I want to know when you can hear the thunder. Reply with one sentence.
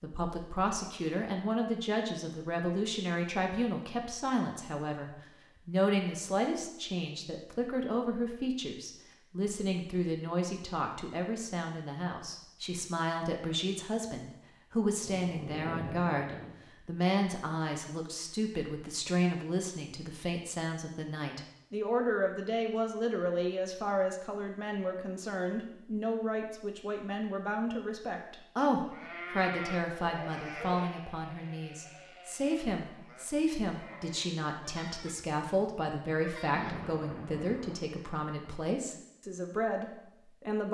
You can hear the thunder from 15.0 to 16.6 s and from 36.5 to 38.5 s.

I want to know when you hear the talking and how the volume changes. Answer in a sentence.
You can hear the talking from 0.0 to 40.7 s, at a steady volume.